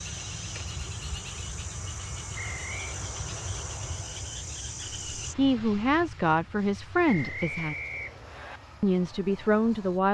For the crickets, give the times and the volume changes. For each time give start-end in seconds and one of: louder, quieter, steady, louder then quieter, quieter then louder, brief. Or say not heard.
0.0-5.3 steady.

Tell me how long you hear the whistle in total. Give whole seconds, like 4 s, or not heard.
2 s.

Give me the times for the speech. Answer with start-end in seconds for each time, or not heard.
5.2-7.8, 8.8-10.0.